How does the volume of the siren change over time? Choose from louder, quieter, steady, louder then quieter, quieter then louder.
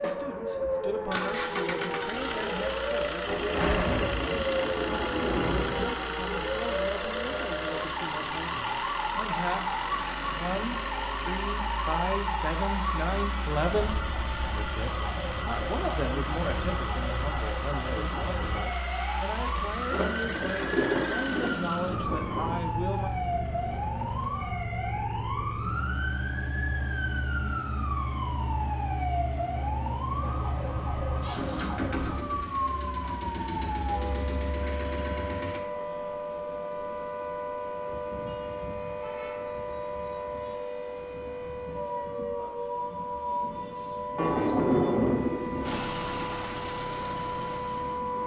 steady.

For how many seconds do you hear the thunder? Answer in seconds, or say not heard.
7 s.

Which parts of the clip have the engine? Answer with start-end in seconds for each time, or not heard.
0.0-35.6, 45.6-48.0.